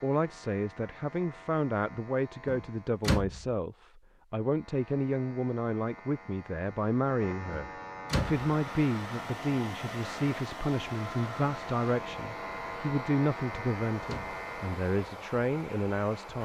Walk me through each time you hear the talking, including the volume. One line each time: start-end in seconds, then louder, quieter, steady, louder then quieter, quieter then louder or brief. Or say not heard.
0.0-16.4 steady.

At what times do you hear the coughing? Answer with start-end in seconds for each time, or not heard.
not heard.